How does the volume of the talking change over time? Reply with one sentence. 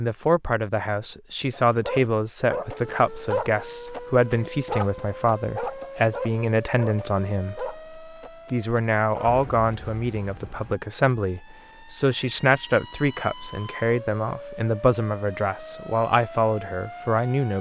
The loudness of the talking stays about the same.